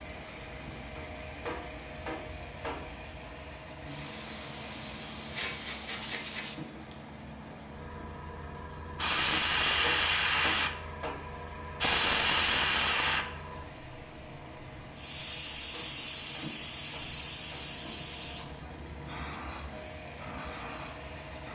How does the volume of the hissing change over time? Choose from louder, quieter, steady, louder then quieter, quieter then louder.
louder then quieter.